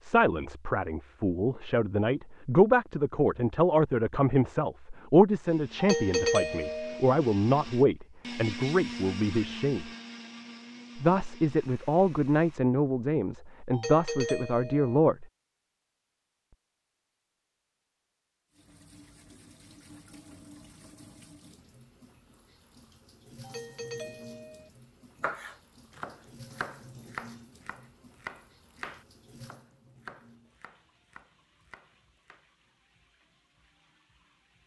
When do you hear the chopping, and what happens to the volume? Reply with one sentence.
You can hear the chopping from 25.2 to 32.5 s, getting quieter.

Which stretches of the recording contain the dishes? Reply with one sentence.
You can't hear the dishes here.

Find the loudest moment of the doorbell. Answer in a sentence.
The volume of the doorbell peaks at 6 seconds.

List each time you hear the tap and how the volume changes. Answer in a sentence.
You can hear the tap from 18.5 to 34.6 s, getting quieter.